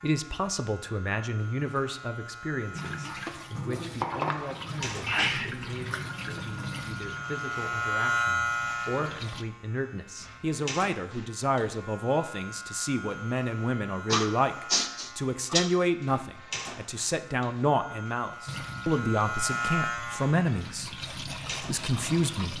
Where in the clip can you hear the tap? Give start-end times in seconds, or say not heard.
2.7-9.4, 18.4-22.5.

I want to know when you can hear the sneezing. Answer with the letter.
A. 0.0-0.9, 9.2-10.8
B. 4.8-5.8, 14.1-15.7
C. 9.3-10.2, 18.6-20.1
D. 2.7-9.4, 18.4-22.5
B.